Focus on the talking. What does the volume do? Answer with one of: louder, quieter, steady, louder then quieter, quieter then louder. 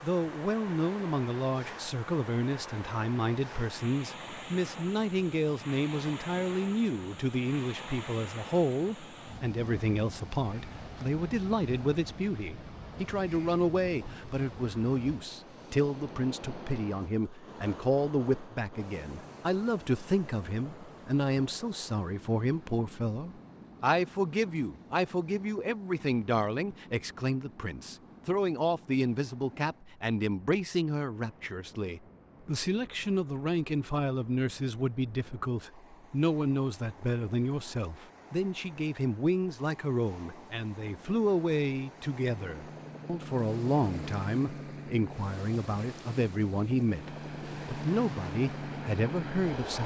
steady.